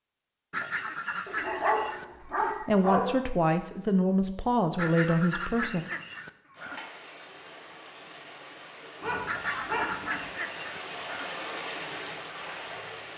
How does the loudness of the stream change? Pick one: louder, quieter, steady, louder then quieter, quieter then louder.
louder.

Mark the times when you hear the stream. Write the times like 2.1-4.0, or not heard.
6.5-13.1.